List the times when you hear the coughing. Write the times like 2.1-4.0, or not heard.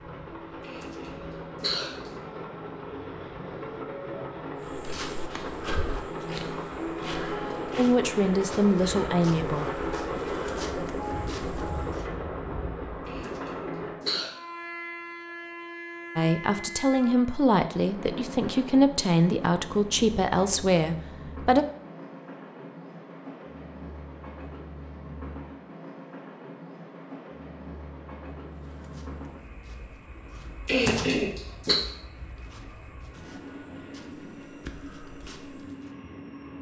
0.6-2.1, 13.1-14.3, 30.6-31.8.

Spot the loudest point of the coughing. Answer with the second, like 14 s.
31 s.